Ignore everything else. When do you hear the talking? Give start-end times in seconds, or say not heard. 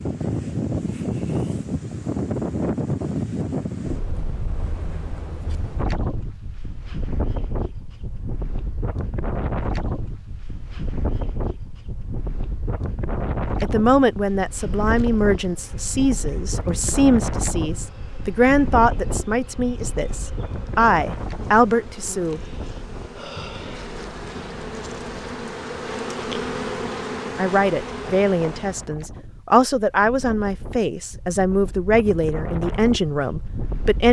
13.6-22.4, 27.4-34.0.